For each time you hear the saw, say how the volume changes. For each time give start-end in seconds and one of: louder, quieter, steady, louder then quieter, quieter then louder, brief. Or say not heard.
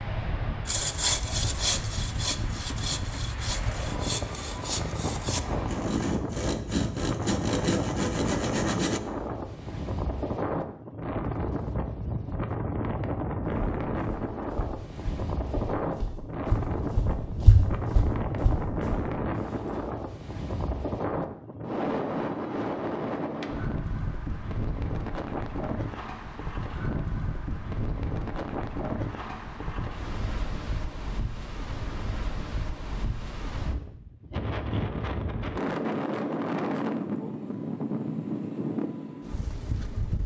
0.7-9.0 quieter then louder.